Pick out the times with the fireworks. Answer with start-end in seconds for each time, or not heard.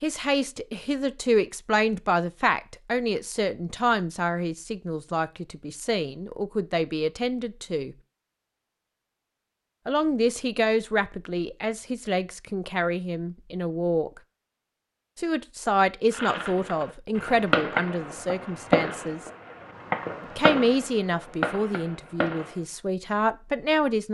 16.1-22.6.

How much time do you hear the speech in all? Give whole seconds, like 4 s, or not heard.
20 s.